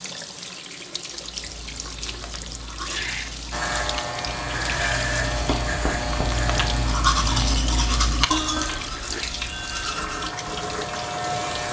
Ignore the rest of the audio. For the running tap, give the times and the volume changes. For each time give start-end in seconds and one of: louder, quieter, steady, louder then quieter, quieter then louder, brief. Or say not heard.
0.0-11.6 steady.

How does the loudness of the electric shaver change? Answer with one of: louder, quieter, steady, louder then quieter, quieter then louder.
quieter then louder.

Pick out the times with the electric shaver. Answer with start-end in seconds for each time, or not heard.
3.5-11.6.